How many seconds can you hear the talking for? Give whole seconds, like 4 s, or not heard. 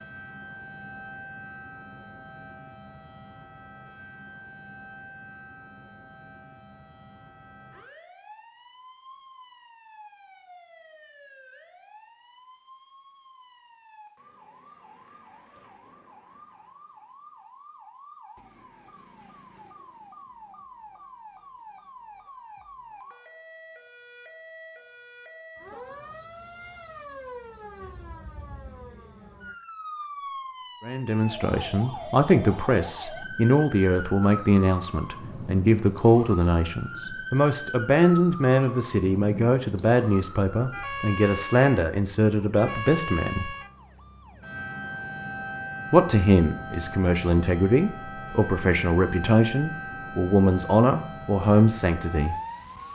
19 s.